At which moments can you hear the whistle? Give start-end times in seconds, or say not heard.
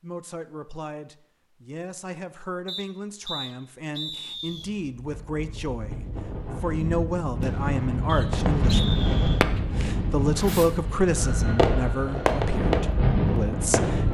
2.6-4.7, 8.1-9.4.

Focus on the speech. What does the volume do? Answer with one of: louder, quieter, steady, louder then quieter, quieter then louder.
louder then quieter.